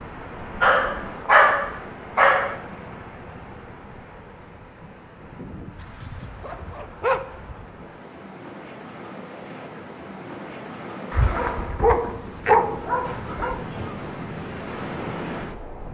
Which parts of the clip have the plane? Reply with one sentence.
You can't hear the plane here.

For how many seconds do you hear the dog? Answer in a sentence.
You can hear the dog for 6 seconds altogether.